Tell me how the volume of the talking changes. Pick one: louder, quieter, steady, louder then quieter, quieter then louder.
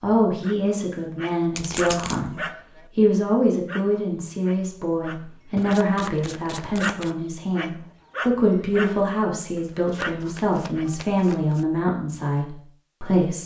steady.